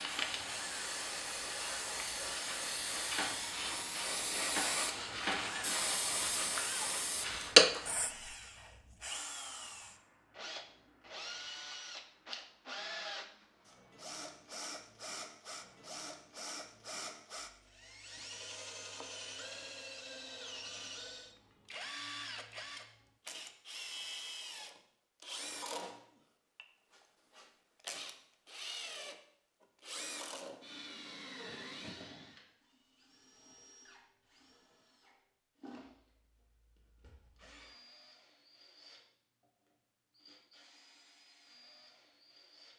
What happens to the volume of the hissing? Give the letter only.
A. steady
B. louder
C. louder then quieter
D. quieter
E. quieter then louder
B.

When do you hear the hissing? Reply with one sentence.
You can hear the hissing from 0.0 to 8.3 s.